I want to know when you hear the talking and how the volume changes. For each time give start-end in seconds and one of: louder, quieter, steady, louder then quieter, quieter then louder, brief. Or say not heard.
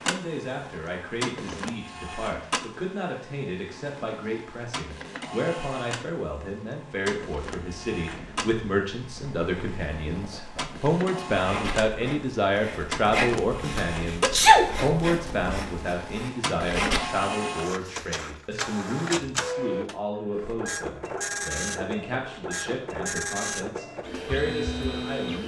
0.0-25.4 louder then quieter.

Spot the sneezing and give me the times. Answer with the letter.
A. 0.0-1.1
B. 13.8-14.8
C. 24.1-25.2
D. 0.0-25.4
B.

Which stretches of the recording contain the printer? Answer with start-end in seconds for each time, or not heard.
0.0-25.4.